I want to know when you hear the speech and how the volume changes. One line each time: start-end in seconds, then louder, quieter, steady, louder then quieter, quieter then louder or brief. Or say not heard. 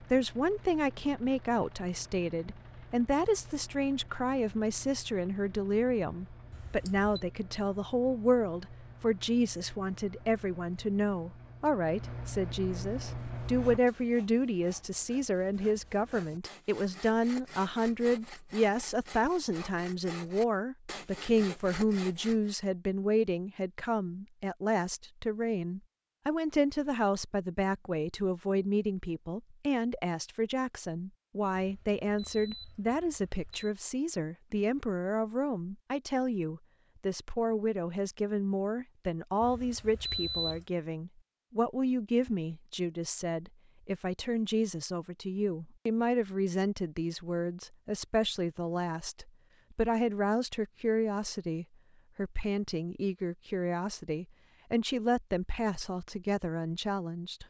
0.1-57.4 steady.